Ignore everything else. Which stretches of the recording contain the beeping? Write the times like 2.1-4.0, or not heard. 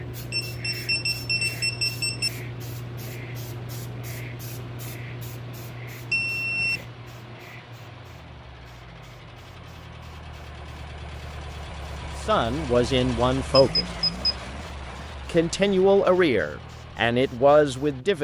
0.3-2.3, 6.1-6.8, 13.6-14.3.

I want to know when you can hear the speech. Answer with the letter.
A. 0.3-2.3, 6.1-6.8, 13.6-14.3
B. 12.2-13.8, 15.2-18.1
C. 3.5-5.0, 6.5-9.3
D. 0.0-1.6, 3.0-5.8
B.